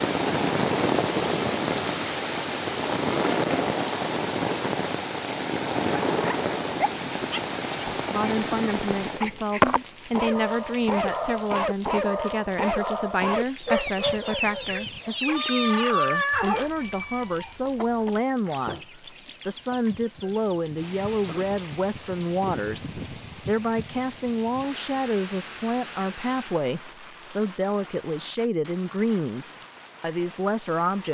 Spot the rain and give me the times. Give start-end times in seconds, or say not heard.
0.0-31.0.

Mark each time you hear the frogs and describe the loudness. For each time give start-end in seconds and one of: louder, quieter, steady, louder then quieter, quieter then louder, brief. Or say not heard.
not heard.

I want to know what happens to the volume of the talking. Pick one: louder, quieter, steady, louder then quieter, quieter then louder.
steady.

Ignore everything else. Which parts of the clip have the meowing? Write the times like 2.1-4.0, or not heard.
15.2-16.8.